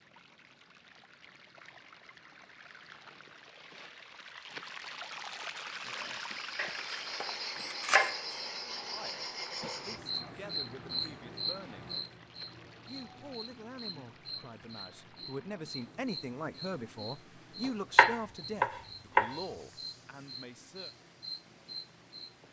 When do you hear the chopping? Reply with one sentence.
The chopping can be heard from 6.5 to 8.4 s and from 17.9 to 19.4 s.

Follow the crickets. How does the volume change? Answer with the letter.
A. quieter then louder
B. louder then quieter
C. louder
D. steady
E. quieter
E.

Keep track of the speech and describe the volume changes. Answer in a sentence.
The loudness of the speech goes up, then down.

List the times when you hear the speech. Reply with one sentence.
You can hear the speech from 8.9 to 11.9 s and from 12.8 to 20.9 s.